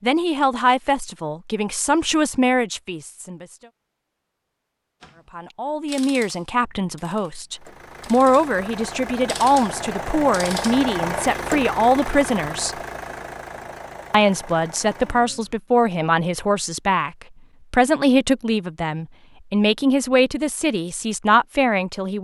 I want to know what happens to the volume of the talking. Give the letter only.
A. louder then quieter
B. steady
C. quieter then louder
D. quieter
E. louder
B.